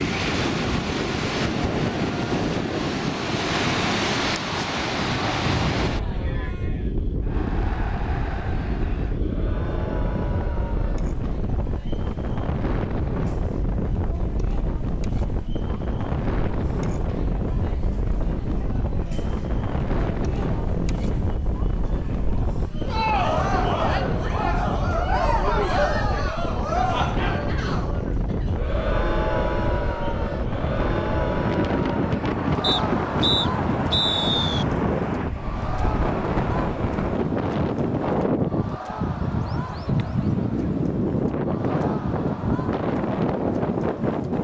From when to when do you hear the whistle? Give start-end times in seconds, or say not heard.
32.6-34.6.